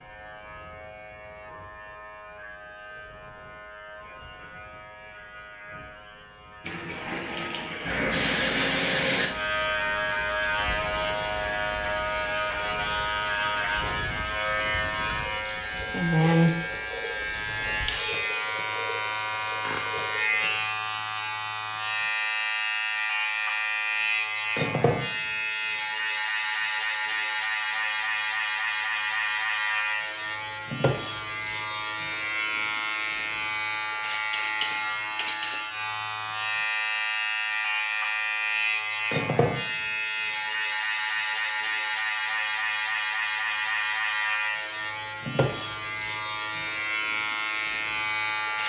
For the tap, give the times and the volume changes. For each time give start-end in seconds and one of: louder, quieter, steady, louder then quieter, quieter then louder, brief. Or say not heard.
6.6-20.6 quieter.